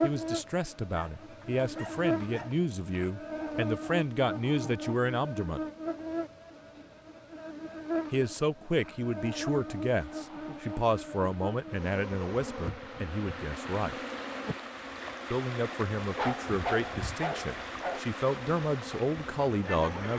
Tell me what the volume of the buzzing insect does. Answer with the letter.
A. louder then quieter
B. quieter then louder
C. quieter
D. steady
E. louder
C.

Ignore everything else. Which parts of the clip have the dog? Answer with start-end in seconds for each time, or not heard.
0.9-2.6, 16.1-18.0.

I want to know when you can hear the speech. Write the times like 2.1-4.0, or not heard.
0.0-5.6, 8.1-13.9, 15.3-20.1.